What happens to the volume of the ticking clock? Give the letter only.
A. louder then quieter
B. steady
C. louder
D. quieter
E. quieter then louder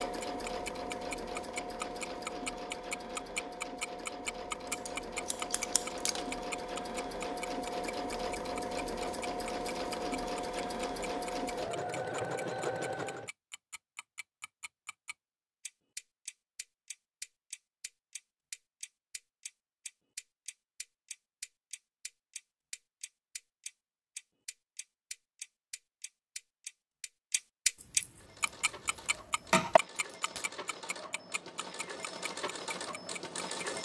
E.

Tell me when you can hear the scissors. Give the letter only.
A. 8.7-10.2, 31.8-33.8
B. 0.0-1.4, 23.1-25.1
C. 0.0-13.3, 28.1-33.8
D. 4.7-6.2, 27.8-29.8
D.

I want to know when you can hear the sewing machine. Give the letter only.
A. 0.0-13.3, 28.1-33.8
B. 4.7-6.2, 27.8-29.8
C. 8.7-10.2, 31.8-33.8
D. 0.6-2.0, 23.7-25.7
A.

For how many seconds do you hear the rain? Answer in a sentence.
The rain can't be heard in this clip.